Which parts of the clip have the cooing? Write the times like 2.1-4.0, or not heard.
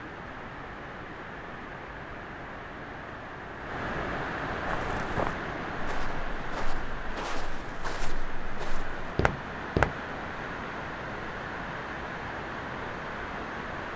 not heard.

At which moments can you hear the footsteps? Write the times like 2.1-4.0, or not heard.
4.7-9.9.